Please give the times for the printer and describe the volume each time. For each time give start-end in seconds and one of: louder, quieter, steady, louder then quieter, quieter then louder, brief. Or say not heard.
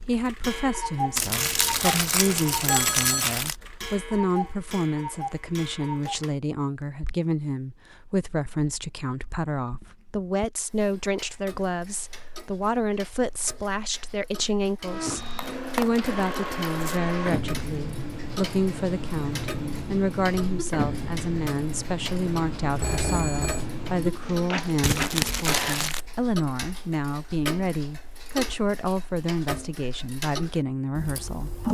14.8-25.9 steady.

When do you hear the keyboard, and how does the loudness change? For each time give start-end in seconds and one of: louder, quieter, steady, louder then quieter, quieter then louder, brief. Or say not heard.
not heard.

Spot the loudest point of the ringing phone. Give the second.
3 s.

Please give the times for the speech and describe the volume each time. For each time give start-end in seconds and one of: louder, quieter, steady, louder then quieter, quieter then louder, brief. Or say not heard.
0.0-31.6 steady.